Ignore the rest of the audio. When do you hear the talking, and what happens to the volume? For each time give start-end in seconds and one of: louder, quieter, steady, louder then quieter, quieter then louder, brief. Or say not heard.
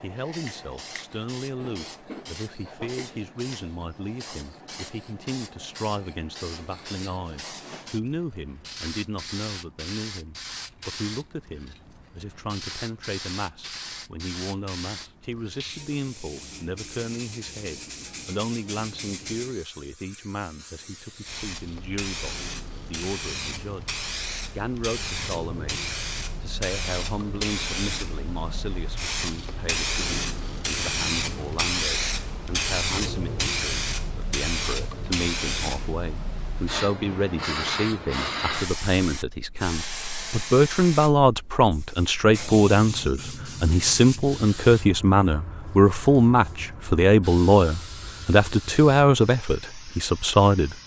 0.0-50.8 louder.